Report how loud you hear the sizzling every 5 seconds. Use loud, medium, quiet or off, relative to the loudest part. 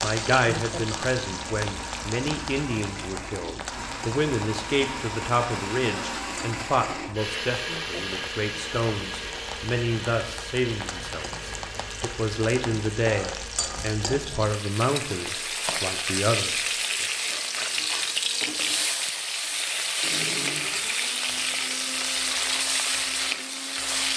medium, quiet, medium, loud, loud.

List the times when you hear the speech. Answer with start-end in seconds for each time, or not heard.
0.0-17.1.